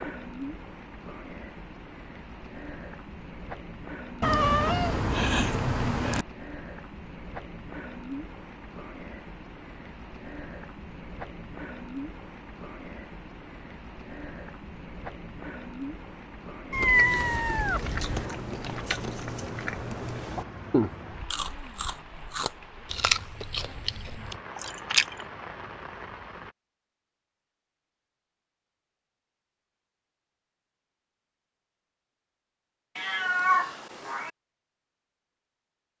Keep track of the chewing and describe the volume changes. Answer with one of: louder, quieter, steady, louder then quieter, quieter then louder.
louder then quieter.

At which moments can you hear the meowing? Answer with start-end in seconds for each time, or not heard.
4.2-6.2, 16.7-18.2, 33.0-34.3.